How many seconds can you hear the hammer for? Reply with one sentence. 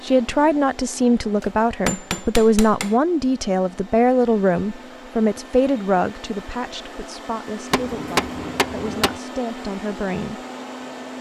The hammer can be heard for 3 seconds in total.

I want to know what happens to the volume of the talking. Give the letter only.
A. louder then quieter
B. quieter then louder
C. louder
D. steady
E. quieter
E.